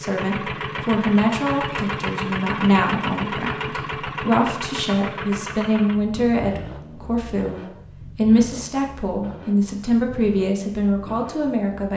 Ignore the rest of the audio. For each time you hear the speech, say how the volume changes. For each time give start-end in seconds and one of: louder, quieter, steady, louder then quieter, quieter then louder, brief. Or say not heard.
0.0-11.9 steady.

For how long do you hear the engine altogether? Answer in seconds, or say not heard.
12 s.